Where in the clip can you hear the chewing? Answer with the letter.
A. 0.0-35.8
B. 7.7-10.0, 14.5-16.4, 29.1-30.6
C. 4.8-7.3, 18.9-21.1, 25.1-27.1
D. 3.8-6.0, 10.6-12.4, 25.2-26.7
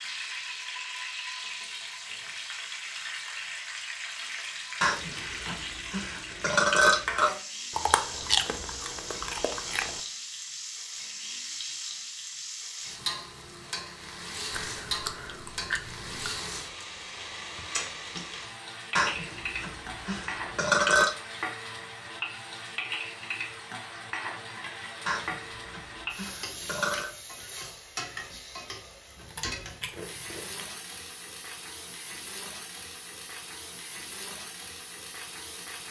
B.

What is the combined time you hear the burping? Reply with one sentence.
You can hear the burping for 7 seconds altogether.